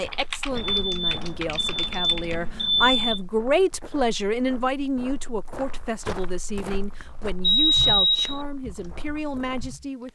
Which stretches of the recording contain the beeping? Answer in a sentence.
The beeping can be heard from 0.6 to 3.2 s and from 7.4 to 8.4 s.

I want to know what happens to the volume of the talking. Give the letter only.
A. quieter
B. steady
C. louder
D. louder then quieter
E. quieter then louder
D.